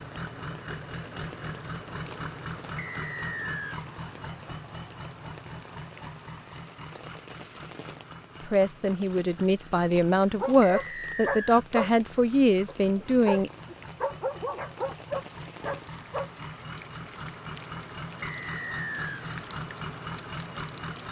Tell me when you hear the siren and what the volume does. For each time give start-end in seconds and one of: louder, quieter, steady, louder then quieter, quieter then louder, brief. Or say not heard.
not heard.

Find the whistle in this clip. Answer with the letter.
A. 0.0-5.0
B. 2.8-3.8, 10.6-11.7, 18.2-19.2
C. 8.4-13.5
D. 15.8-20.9
B.